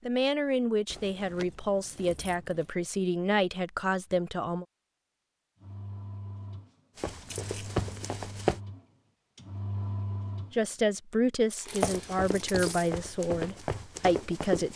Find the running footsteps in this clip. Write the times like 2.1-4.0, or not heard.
7.0-8.6, 11.7-14.7.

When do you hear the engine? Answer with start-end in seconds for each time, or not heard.
5.6-10.7.